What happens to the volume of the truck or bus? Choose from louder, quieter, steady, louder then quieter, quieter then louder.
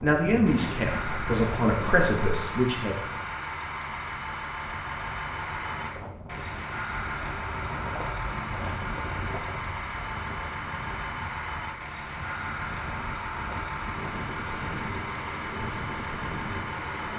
steady.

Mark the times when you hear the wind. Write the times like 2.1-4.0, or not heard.
0.0-17.1.